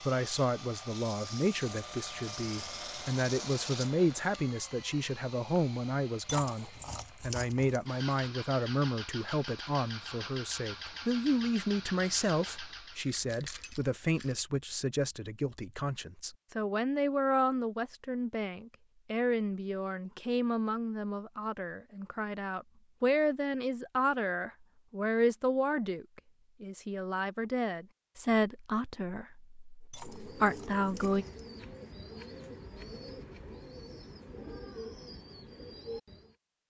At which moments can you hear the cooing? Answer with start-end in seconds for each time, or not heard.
30.0-36.4.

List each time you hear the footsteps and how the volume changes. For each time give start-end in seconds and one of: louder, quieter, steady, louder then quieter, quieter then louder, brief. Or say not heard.
not heard.